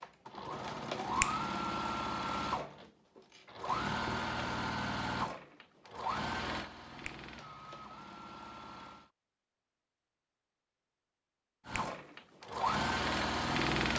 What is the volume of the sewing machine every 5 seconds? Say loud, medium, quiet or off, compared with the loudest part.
loud, medium, loud.